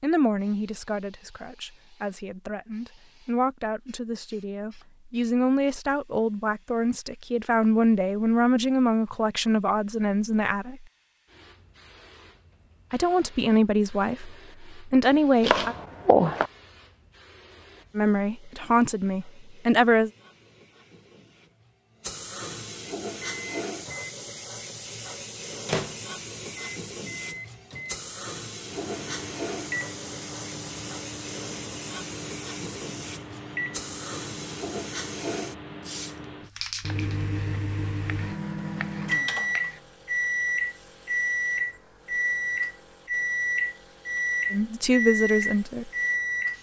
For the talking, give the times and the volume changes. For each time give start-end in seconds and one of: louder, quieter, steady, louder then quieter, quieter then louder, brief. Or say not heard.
0.0-10.8 louder
12.9-15.8 brief
17.9-20.1 brief
44.5-45.9 brief.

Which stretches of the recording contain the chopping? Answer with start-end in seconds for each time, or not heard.
15.4-16.5, 37.4-39.8.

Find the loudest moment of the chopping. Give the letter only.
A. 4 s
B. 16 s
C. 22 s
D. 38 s
B.